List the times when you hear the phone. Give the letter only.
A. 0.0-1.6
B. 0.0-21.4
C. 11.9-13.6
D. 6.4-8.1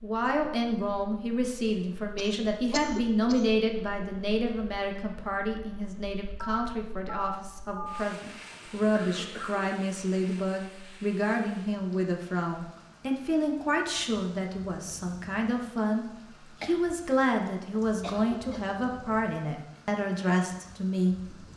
D.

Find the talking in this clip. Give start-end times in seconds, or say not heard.
0.0-21.4.